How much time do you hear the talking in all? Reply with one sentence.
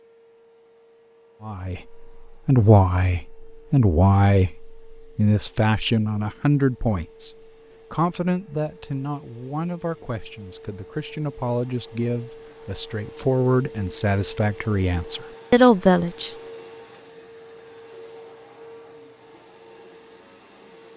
The talking can be heard for 14 seconds in total.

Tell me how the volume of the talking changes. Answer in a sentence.
The loudness of the talking goes down, then up.